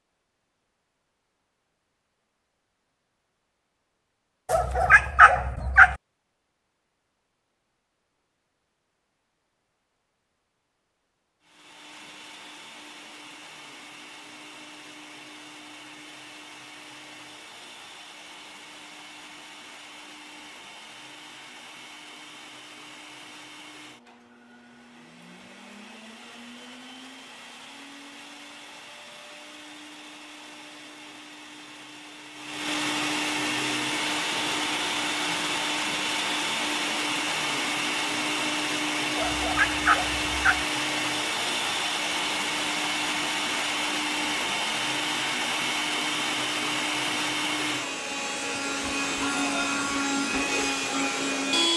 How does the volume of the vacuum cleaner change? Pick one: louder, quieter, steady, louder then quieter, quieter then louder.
louder.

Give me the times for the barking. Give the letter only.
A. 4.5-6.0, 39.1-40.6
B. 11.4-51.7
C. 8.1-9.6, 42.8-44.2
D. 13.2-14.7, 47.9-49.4
A.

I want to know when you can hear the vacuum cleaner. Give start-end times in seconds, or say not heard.
11.4-51.7.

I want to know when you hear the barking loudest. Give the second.
5 s.